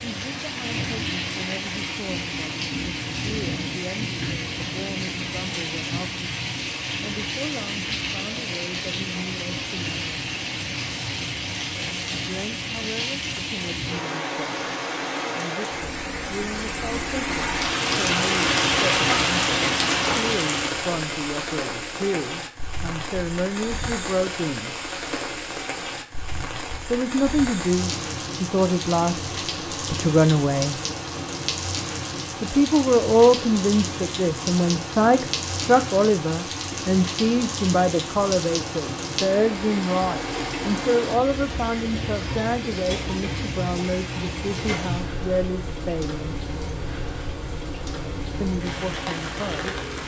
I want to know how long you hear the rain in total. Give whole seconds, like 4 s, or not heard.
50 s.